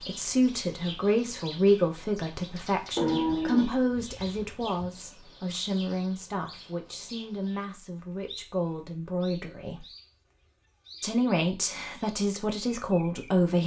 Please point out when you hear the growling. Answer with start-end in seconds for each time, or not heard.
not heard.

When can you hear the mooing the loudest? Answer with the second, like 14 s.
3 s.